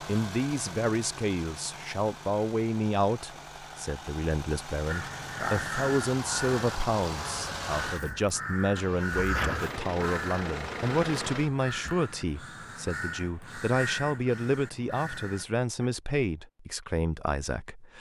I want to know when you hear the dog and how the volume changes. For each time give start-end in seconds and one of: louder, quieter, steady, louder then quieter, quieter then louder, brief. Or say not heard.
not heard.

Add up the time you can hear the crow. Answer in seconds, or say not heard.
11 s.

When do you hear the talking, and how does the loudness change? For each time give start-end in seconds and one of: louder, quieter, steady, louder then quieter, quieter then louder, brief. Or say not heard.
0.0-17.9 steady.